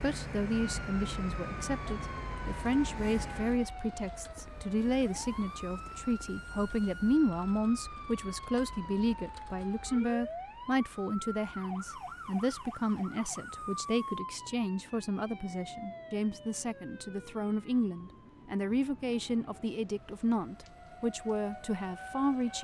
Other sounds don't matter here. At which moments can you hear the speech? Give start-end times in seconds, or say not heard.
0.0-22.5.